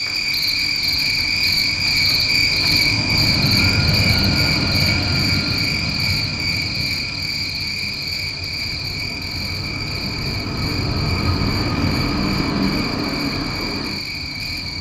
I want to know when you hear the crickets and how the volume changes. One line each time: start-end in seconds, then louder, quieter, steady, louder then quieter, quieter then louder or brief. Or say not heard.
0.0-14.7 quieter.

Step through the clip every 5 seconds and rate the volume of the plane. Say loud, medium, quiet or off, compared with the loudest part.
loud, medium, loud.